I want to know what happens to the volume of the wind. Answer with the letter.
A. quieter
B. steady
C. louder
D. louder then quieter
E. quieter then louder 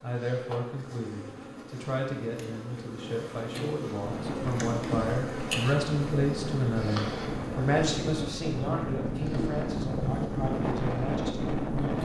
C.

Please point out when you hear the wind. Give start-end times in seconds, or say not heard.
3.9-12.0.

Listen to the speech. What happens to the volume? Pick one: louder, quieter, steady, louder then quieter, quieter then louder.
louder then quieter.